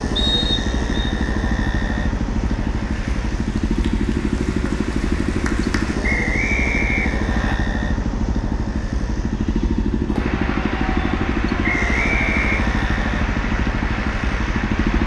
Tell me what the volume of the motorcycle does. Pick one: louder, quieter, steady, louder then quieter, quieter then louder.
steady.